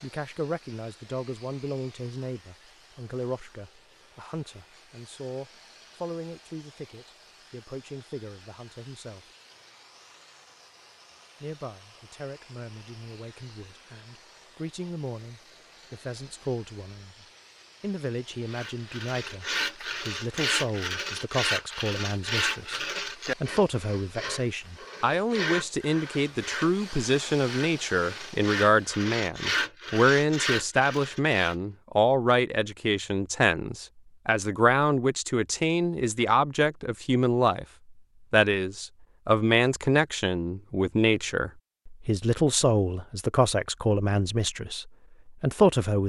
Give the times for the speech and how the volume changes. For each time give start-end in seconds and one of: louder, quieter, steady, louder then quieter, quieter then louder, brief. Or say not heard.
0.0-9.3 quieter
11.4-37.6 louder
38.3-46.0 quieter.